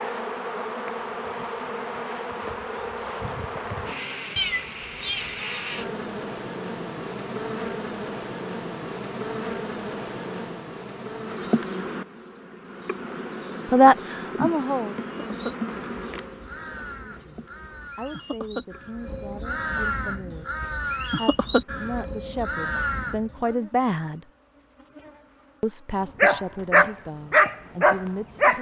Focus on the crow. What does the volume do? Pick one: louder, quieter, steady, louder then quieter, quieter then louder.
louder.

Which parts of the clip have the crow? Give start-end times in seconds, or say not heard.
15.2-23.5.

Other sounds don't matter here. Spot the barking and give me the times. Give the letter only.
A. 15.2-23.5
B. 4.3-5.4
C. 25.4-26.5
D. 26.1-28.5
D.